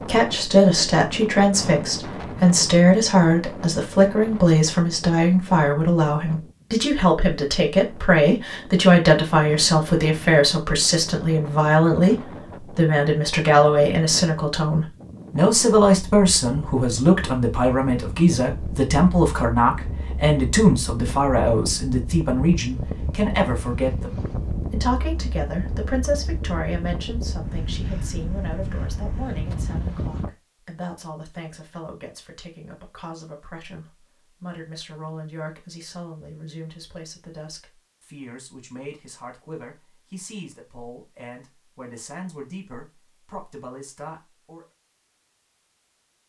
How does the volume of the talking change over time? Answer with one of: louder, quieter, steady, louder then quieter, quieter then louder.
quieter.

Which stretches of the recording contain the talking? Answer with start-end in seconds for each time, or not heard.
0.0-44.6.